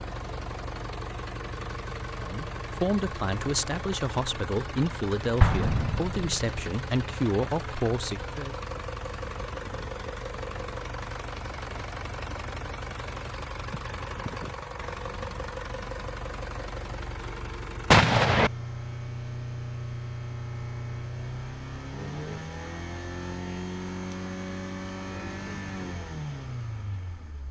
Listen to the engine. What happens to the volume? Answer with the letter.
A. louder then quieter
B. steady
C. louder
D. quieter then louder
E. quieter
B.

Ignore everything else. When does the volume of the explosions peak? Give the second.
18 s.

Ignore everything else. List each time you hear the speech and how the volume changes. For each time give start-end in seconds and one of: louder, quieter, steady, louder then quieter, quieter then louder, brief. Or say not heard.
2.1-8.6 steady.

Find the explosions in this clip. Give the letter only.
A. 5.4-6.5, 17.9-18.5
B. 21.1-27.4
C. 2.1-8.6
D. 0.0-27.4
A.